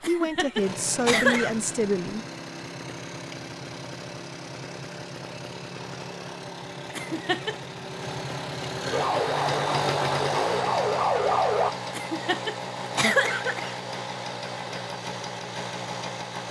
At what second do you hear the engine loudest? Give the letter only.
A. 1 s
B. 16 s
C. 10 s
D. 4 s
C.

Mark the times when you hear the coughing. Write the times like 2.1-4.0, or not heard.
0.0-1.6, 6.9-7.5, 11.9-13.8.